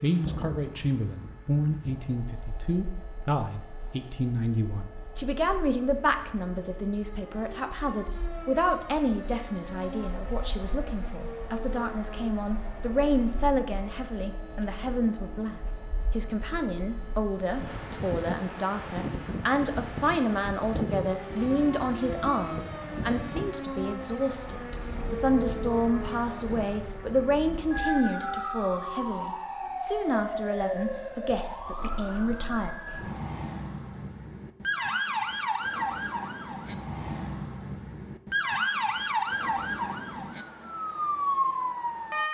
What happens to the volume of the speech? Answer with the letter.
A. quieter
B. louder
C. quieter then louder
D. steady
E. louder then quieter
D.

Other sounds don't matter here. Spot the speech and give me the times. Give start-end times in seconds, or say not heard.
0.0-32.7.